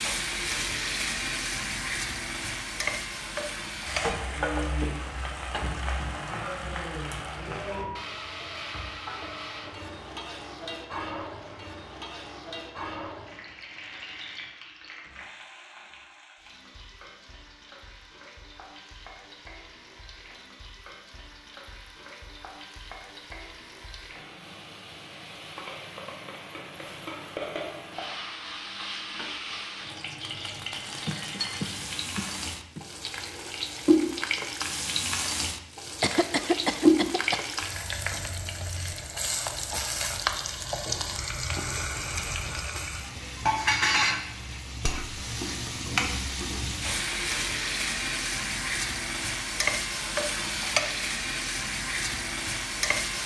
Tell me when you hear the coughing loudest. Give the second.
37 s.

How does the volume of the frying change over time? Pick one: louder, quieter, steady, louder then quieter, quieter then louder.
quieter then louder.